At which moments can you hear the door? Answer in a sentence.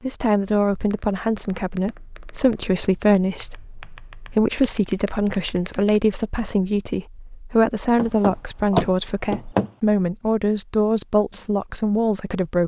The door can be heard from 8.0 to 9.7 s.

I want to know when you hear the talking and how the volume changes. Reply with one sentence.
You can hear the talking from 0.0 to 12.6 s, at a steady volume.